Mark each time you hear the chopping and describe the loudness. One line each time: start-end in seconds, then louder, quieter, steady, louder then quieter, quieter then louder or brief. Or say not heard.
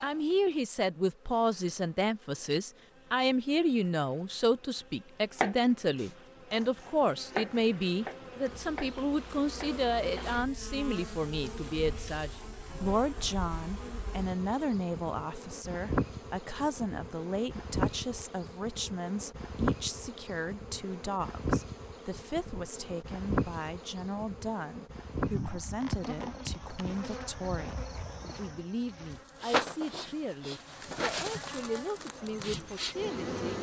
5.3-10.3 louder then quieter.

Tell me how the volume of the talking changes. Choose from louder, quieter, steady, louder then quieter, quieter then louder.
quieter.